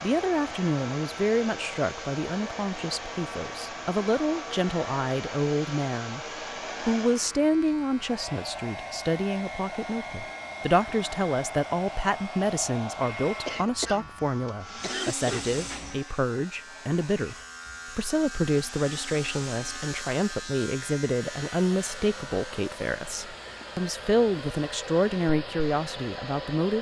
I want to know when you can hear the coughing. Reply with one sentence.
You can hear the coughing from 13.4 to 15.4 s.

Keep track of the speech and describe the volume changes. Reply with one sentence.
The volume of the speech stays about the same.